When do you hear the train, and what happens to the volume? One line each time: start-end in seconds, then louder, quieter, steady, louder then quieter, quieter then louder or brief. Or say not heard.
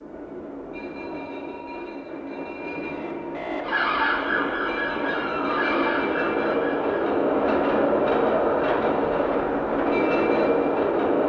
0.0-11.2 louder.